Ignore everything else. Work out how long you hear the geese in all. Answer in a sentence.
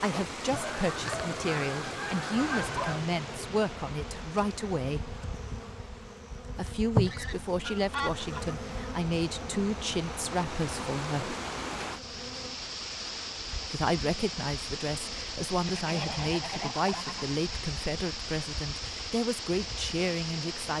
You can hear the geese for 6 seconds altogether.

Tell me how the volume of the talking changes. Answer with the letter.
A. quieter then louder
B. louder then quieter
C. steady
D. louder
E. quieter
C.